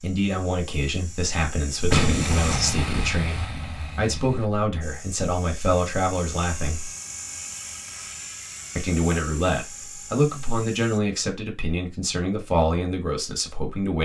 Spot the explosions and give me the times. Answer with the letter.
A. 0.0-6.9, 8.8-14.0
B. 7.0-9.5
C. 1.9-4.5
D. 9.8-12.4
C.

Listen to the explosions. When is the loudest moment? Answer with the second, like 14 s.
2 s.